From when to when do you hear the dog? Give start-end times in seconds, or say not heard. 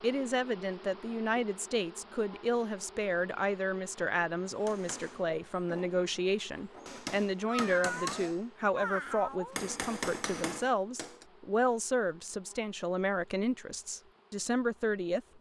not heard.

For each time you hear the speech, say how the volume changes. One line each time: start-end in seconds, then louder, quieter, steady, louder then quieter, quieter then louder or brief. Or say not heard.
0.0-15.2 steady.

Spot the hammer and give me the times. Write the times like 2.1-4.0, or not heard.
4.5-11.2.